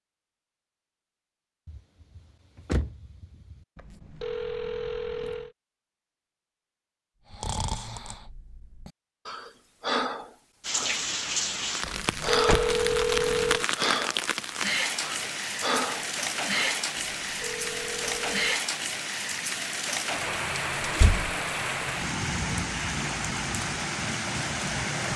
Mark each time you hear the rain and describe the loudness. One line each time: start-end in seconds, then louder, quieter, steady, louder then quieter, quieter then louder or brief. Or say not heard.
10.6-25.1 steady.